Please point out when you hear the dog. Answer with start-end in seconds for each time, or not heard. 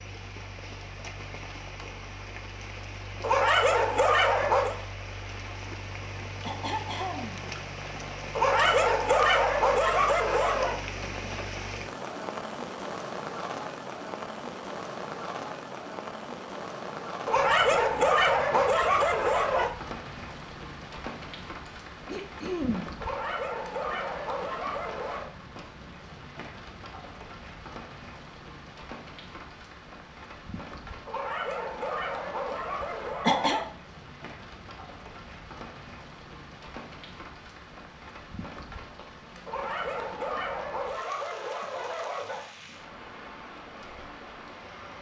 3.2-4.8, 8.3-10.8, 17.2-19.7, 23.0-25.3, 31.1-33.6, 39.5-42.5.